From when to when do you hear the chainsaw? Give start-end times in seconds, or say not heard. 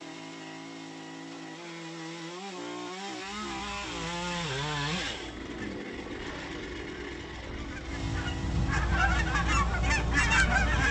0.0-10.8.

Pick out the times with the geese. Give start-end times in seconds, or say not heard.
3.5-10.8.